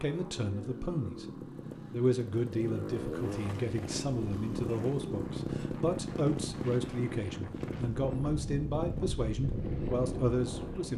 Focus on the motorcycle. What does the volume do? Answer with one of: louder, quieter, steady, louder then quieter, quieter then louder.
louder then quieter.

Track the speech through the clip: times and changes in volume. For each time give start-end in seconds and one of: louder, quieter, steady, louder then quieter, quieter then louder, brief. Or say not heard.
0.0-1.2 brief
1.9-10.9 steady.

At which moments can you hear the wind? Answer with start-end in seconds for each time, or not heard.
3.4-10.9.